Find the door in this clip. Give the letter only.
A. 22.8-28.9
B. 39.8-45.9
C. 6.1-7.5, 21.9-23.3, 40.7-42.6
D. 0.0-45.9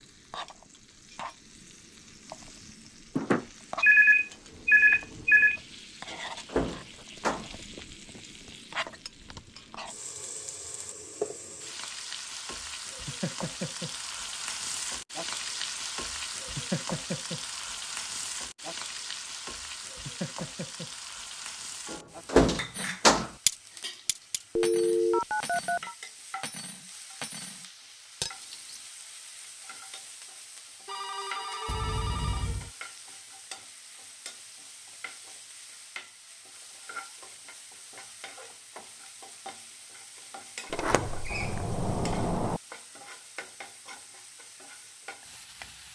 C.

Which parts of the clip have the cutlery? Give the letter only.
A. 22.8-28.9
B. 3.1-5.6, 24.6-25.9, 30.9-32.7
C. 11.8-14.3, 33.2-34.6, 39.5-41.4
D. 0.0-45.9
A.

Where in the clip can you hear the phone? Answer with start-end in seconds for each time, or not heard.
3.1-5.6, 24.6-25.9, 30.9-32.7.